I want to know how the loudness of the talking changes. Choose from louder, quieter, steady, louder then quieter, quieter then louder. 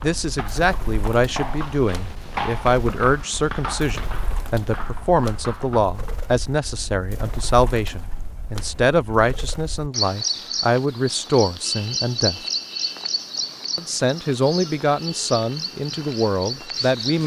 steady.